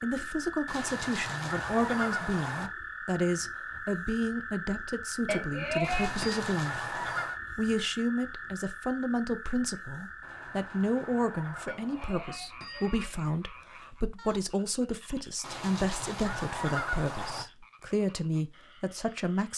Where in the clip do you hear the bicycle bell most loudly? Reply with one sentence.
The volume of the bicycle bell peaks at 6 seconds.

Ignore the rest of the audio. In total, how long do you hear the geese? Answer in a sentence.
You can hear the geese for 8 seconds altogether.